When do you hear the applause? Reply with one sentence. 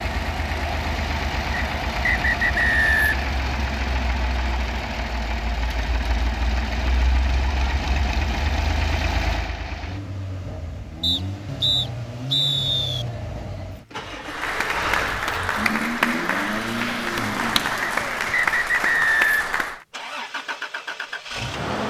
The applause can be heard from 14.2 to 19.9 s.